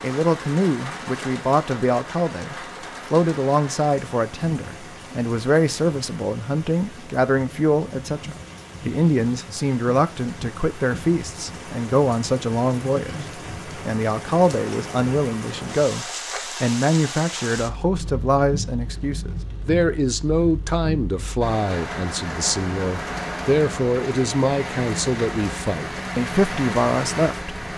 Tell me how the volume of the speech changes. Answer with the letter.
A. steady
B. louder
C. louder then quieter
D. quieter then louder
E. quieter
A.